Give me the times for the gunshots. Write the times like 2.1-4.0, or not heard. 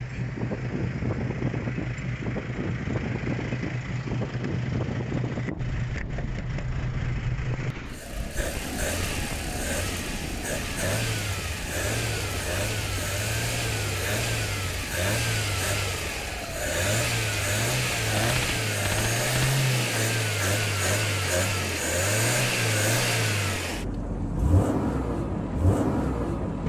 18.1-19.6.